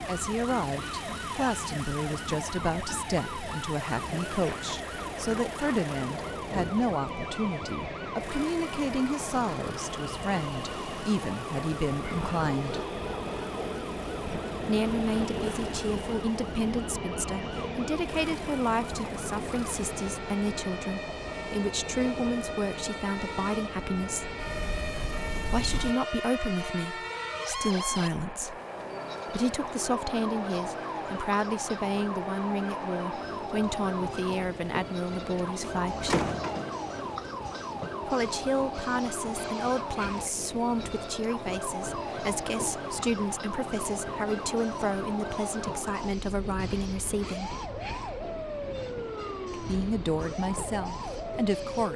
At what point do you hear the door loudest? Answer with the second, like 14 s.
36 s.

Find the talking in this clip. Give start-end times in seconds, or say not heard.
0.1-12.8, 14.7-24.4, 25.4-28.6, 29.3-36.3, 38.0-47.5, 49.5-51.9.